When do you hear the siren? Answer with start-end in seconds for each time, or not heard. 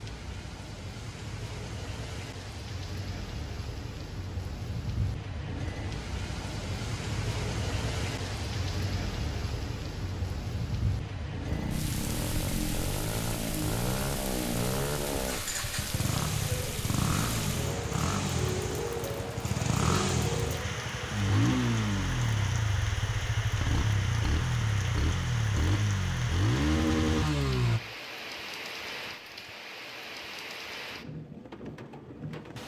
not heard.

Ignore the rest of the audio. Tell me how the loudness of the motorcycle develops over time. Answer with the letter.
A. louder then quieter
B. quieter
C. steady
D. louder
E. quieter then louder
C.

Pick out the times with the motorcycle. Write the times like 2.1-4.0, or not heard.
11.4-27.8.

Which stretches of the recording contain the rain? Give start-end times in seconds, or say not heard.
0.0-32.6.